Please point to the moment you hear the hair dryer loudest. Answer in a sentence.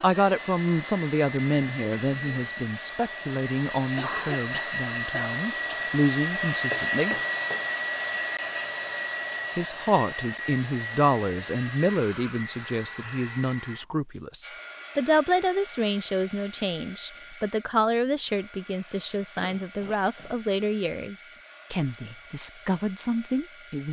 The volume of the hair dryer peaks at 7 seconds.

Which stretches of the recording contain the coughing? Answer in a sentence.
The coughing can be heard from 3.8 to 5.8 s and from 19.4 to 20.4 s.